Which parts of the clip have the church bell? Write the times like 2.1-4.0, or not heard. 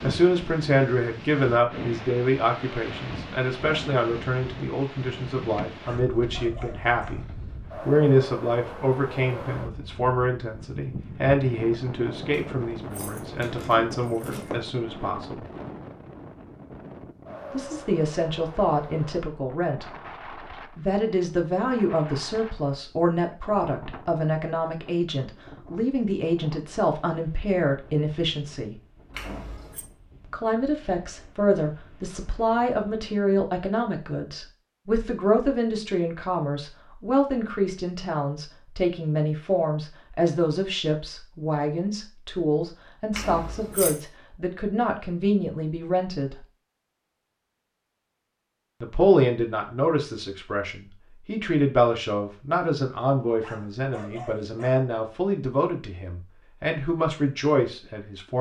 not heard.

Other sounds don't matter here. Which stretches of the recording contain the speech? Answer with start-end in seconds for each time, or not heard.
0.0-15.4, 17.5-19.9, 20.8-28.8, 30.3-46.5, 48.8-58.3.